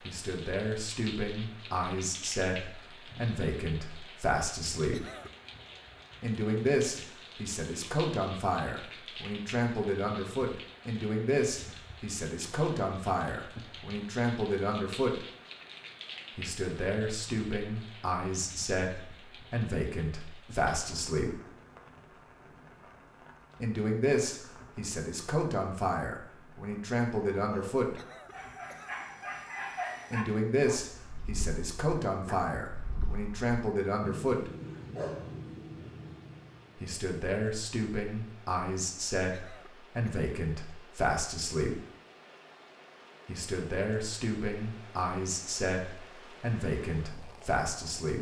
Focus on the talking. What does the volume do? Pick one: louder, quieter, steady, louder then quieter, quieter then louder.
steady.